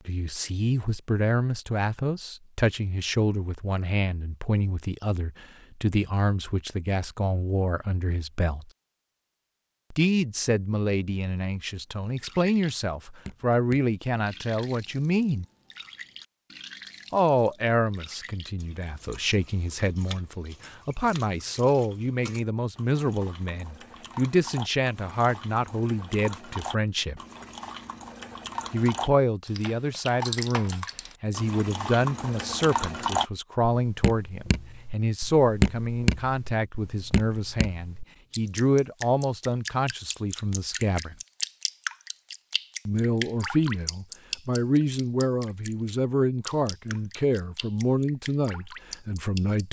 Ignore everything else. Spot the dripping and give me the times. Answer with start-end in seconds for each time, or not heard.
12.2-49.6.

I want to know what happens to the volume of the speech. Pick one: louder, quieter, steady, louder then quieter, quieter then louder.
steady.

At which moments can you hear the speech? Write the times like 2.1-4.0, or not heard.
0.1-8.7, 9.9-15.4, 17.1-27.2, 28.7-41.1, 42.9-49.6.